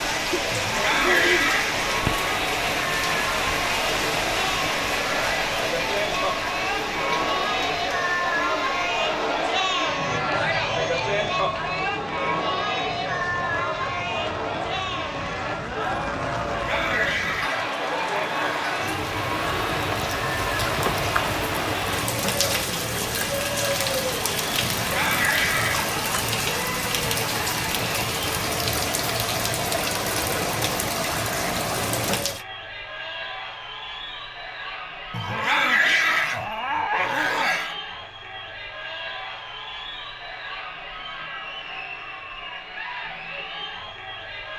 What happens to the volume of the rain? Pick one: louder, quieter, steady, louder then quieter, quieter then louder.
quieter then louder.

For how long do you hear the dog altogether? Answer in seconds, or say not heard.
8 s.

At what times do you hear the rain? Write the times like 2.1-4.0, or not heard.
0.0-32.5.